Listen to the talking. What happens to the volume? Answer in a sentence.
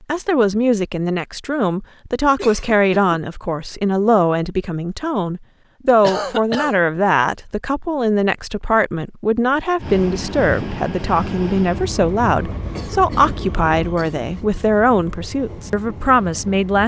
The volume of the talking stays about the same.